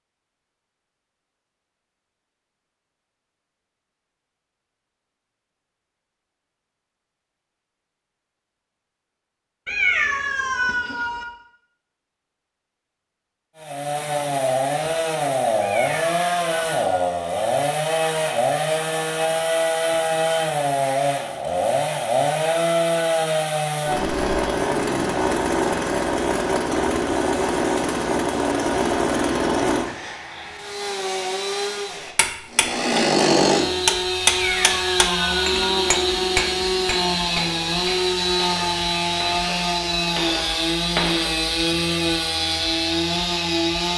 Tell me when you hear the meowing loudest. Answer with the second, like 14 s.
10 s.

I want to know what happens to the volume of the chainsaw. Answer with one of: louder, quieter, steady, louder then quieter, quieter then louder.
steady.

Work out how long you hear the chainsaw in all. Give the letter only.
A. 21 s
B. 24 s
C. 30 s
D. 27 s
C.